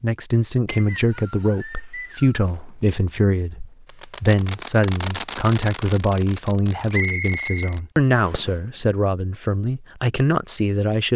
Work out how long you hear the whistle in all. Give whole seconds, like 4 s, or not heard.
3 s.